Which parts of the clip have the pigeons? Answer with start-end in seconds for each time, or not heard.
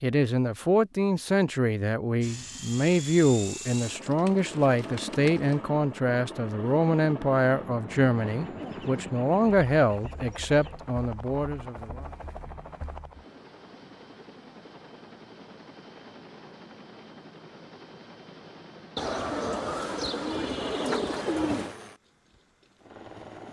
3.9-5.6, 8.2-10.8, 18.9-21.8.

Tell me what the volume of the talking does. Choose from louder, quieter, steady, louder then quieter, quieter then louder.
steady.